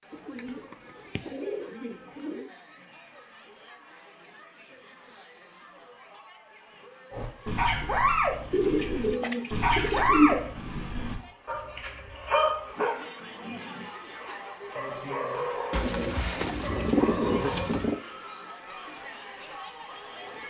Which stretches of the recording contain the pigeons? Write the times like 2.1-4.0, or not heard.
0.1-2.5, 8.5-10.5, 15.7-18.0.